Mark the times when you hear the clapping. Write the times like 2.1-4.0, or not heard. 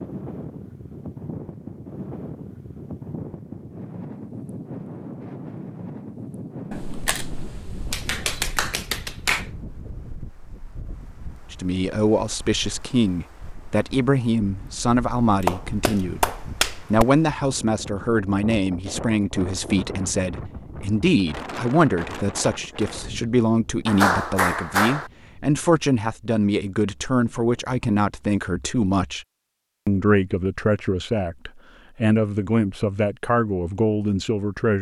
7.9-9.4, 15.2-17.1, 23.9-25.1.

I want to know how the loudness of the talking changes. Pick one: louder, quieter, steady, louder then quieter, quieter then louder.
steady.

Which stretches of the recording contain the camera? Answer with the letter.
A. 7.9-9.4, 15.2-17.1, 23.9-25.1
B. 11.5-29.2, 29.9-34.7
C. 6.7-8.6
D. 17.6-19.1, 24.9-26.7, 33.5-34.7
C.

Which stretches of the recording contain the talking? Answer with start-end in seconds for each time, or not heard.
11.5-29.2, 29.9-34.7.